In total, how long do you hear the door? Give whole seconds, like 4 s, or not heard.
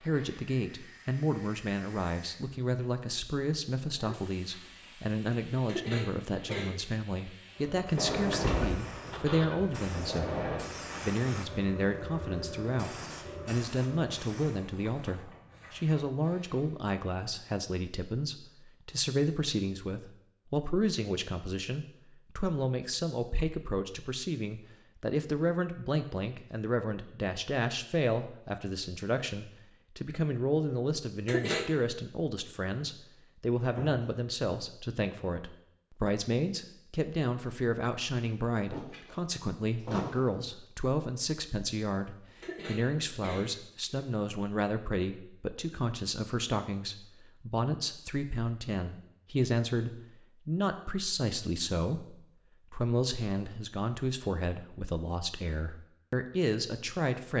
5 s.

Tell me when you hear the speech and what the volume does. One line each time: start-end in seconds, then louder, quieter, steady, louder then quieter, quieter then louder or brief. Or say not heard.
0.0-57.3 steady.